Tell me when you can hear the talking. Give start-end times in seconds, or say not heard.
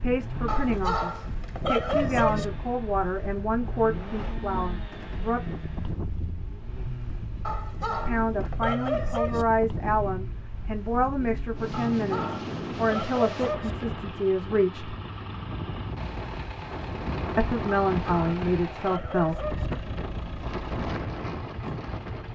0.0-5.4, 8.0-14.9, 17.4-19.4.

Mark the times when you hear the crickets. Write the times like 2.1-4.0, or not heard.
not heard.